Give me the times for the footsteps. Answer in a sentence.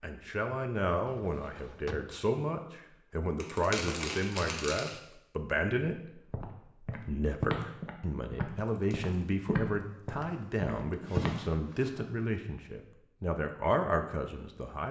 The footsteps can be heard from 6.3 to 11.4 s.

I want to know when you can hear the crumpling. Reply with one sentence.
The crumpling can be heard from 3.4 to 5.0 s and from 8.6 to 9.3 s.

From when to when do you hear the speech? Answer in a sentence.
The speech can be heard from 0.0 to 14.8 s.